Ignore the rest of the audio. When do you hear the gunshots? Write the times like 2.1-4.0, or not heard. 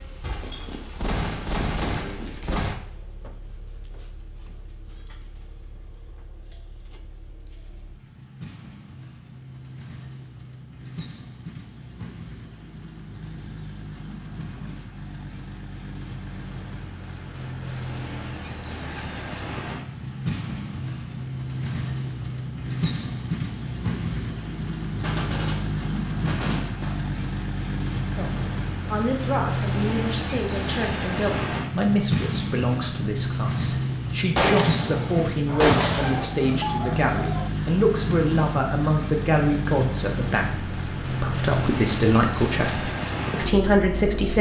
0.2-2.8, 25.0-27.0, 34.4-36.3.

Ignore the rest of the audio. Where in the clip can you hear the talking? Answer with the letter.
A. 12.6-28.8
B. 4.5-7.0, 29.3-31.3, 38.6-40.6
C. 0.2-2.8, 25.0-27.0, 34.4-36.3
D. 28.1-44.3
D.